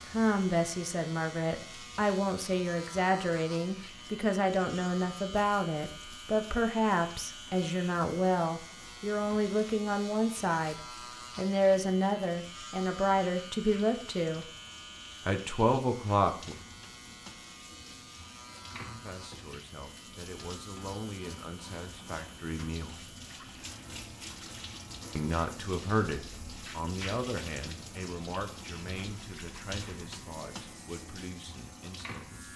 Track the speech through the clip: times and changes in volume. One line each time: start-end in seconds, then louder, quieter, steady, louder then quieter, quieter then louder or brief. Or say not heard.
0.1-14.5 steady
15.2-16.6 brief
18.7-23.0 louder
25.1-32.5 quieter.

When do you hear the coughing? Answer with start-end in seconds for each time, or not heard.
not heard.